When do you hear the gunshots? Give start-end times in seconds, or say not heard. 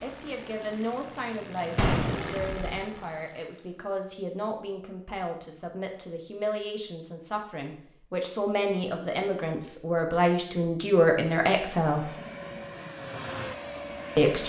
1.8-2.6.